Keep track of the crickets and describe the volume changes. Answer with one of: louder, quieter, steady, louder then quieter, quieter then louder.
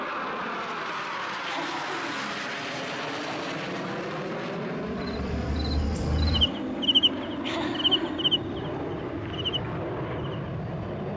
louder then quieter.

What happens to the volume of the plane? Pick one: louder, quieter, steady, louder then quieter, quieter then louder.
steady.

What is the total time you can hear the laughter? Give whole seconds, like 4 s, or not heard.
2 s.